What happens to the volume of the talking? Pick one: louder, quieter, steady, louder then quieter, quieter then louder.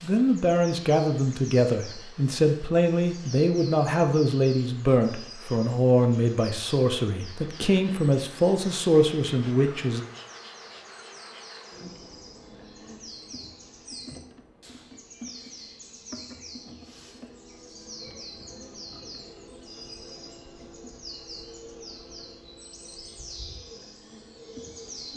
steady.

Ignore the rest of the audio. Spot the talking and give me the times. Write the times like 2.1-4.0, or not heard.
0.0-10.0.